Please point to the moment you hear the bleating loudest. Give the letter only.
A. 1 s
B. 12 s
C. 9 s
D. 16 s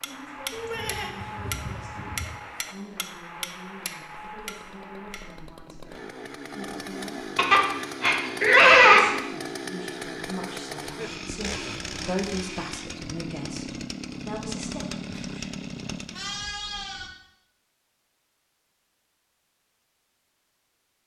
C.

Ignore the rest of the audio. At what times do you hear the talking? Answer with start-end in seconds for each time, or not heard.
0.0-7.3, 8.8-14.8.